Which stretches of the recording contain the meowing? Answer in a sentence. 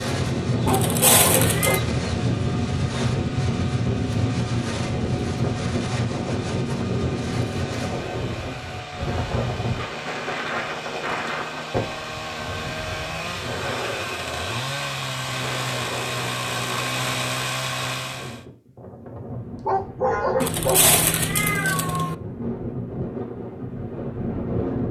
You can hear the meowing from 0.7 to 1.8 s and from 20.4 to 22.1 s.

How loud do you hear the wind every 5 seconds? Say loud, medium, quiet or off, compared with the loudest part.
loud, loud, medium, quiet, medium.